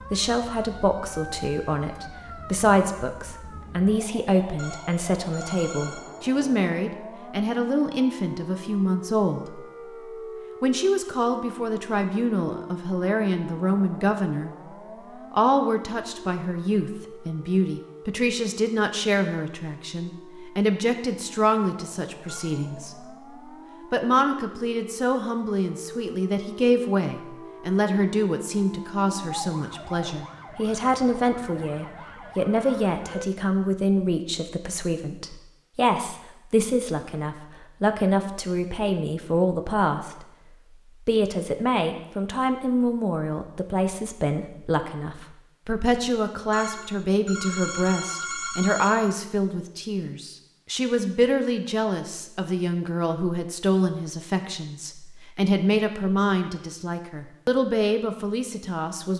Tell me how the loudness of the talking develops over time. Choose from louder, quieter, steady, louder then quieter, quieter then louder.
steady.